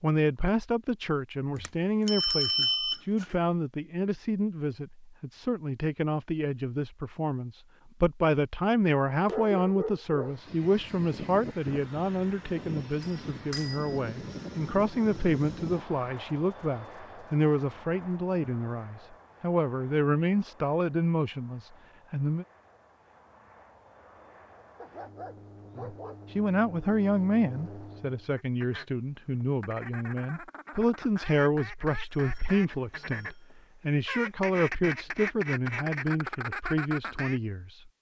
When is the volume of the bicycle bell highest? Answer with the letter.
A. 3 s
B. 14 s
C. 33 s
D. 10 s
A.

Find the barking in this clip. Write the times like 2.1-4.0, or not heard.
9.2-10.3, 24.8-26.2.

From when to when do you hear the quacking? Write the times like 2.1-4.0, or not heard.
28.4-37.4.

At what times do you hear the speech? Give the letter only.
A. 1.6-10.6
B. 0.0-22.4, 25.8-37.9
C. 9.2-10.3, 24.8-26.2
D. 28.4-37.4
B.